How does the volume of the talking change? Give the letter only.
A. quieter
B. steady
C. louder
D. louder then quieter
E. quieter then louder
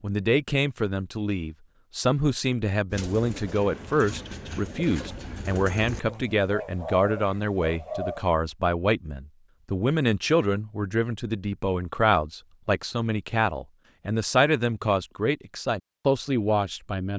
B.